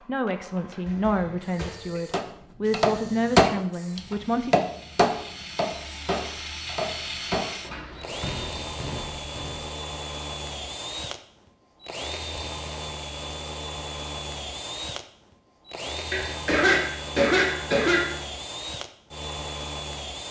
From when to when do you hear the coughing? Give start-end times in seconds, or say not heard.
0.8-2.0, 16.1-18.1.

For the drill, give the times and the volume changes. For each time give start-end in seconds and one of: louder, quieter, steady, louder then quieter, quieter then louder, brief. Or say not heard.
0.0-20.2 louder.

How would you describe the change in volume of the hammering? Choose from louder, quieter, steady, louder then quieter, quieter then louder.
quieter.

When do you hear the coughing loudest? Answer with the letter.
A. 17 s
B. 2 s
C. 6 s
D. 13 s
A.